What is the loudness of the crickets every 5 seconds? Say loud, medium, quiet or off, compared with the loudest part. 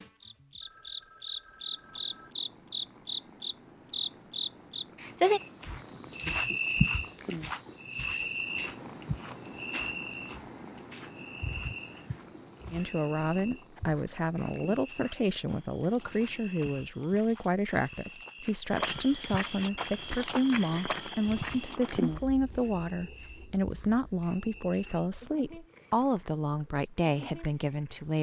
loud, loud, quiet, quiet, quiet, quiet.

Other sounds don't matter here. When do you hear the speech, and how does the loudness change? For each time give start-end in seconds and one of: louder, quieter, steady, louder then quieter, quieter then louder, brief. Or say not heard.
12.7-28.1 steady.